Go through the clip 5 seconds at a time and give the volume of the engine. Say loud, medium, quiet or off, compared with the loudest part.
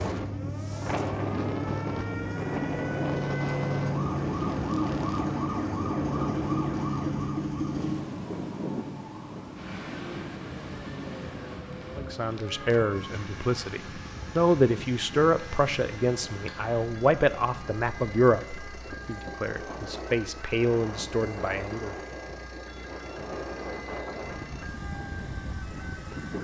loud, loud, quiet, quiet, quiet, quiet.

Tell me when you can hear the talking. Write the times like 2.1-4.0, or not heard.
11.9-21.9.